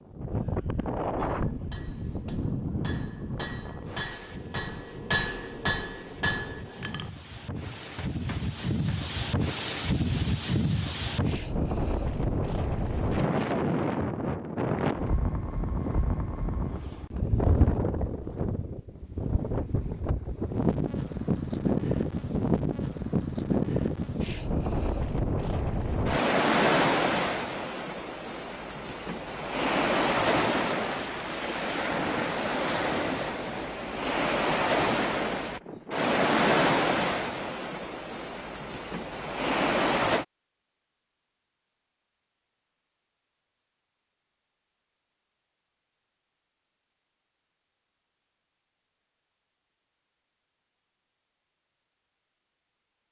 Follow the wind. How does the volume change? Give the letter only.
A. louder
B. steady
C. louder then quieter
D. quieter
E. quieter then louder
A.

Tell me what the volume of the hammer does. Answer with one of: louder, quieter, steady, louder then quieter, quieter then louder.
louder then quieter.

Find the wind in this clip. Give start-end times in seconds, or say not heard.
0.0-40.2.